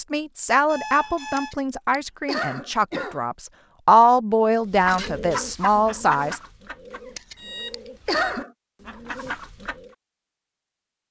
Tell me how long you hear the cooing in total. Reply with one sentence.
The cooing can be heard for 5 seconds in total.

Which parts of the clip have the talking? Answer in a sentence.
The talking can be heard from 0.0 to 6.4 s.